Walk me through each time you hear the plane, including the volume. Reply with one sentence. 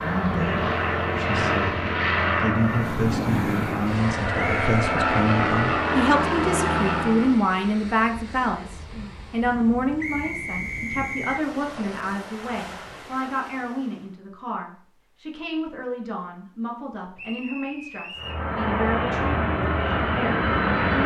The plane can be heard from 0.0 to 7.4 s, getting quieter then louder; and briefly from 18.1 to 21.0 s.